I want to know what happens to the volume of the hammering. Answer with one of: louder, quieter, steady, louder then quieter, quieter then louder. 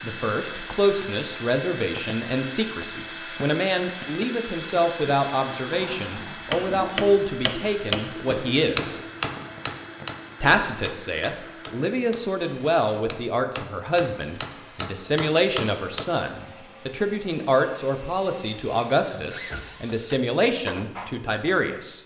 quieter then louder.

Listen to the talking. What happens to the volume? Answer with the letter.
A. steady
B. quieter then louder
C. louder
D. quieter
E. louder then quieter
A.